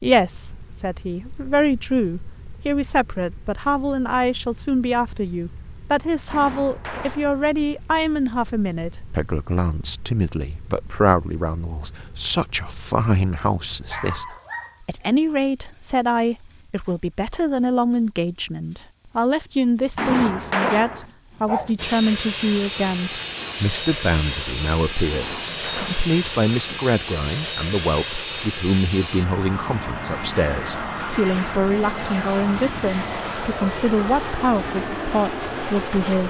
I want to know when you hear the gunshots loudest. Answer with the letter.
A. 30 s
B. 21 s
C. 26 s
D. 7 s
B.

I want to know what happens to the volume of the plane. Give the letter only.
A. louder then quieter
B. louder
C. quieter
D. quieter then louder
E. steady
E.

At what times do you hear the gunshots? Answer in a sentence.
You can hear the gunshots from 6.2 to 7.4 s, from 19.9 to 21.1 s and from 25.1 to 26.0 s.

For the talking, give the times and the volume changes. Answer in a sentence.
You can hear the talking from 0.0 to 36.2 s, at a steady volume.